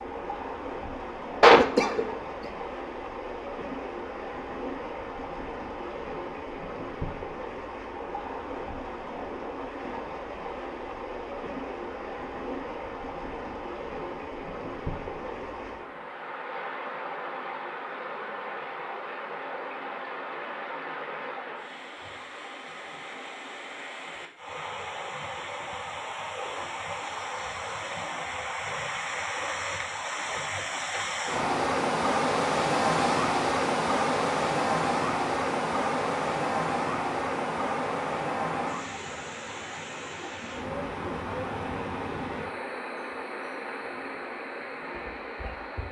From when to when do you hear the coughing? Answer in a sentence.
The coughing can be heard from 1.4 to 2.5 s.